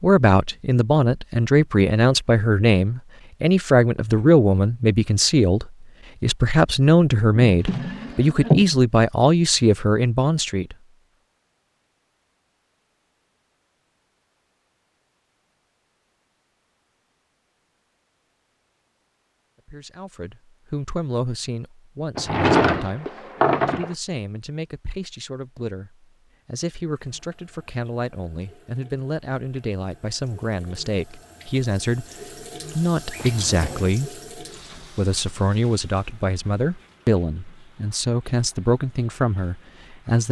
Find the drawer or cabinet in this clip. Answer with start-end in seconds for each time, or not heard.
7.5-8.7, 22.1-23.9, 33.1-34.0.